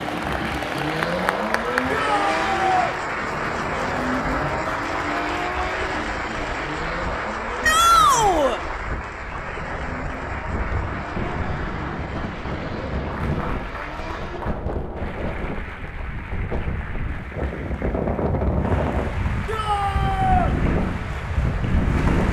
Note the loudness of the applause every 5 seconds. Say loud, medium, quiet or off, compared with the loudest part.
loud, loud, medium, medium, medium.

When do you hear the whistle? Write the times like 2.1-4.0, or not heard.
not heard.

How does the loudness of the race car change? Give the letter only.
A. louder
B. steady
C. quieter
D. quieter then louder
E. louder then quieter
C.